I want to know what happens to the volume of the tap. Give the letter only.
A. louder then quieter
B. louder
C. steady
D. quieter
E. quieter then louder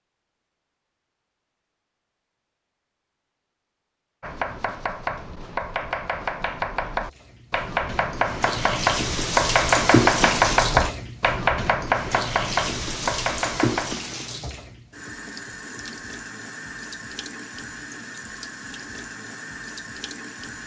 D.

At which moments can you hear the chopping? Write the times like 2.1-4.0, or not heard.
4.2-13.9.